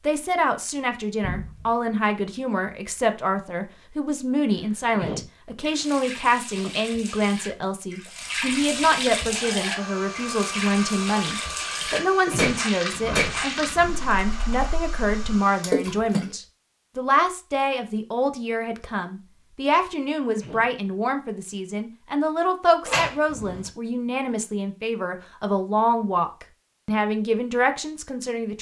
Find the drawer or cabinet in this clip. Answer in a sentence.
You can hear the drawer or cabinet from 1.2 to 1.8 s, from 12.9 to 14.1 s and from 22.9 to 23.7 s.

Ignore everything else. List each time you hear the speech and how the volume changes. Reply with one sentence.
The speech can be heard from 0.0 to 28.5 s, at a steady volume.